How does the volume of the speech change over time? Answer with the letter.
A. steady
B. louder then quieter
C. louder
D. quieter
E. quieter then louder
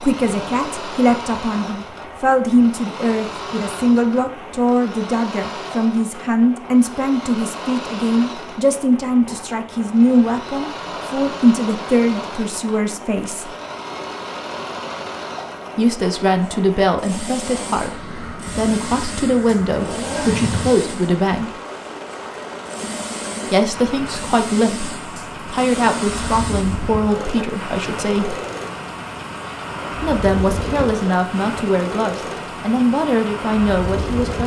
A.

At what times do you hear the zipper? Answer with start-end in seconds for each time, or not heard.
19.8-20.8.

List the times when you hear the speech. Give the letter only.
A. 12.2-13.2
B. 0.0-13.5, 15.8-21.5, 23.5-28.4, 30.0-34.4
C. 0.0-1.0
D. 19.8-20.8
B.